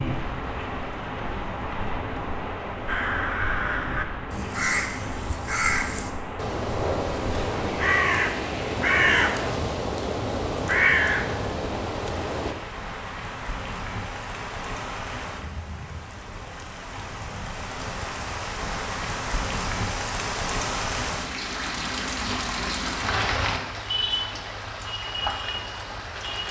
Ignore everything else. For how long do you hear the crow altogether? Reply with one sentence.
You can hear the crow for 10 seconds altogether.